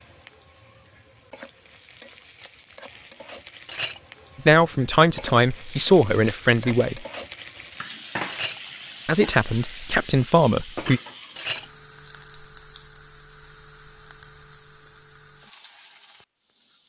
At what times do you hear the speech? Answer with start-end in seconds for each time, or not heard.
4.5-7.0, 9.1-11.0.